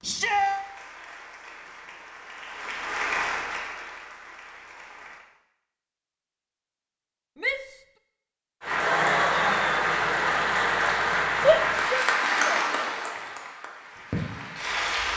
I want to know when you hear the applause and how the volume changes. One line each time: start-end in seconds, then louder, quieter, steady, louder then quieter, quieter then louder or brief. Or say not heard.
0.0-5.2 louder then quieter
8.6-15.1 quieter.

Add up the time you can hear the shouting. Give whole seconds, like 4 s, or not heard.
2 s.